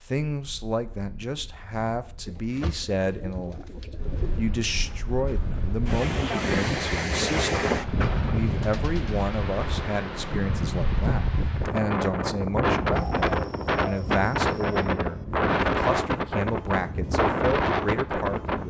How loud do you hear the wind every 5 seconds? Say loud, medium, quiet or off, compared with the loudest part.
quiet, loud, loud, loud.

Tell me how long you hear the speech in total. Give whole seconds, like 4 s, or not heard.
18 s.